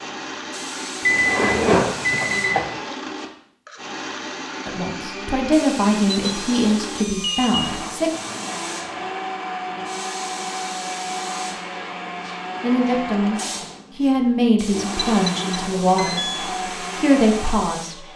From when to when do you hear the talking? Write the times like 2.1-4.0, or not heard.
4.7-8.1, 12.6-18.1.